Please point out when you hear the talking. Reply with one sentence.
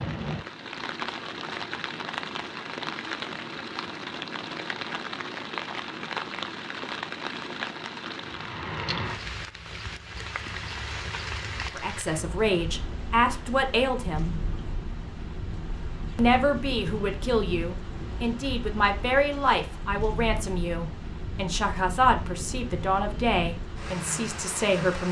You can hear the talking from 11.8 to 14.4 s and from 16.1 to 25.0 s.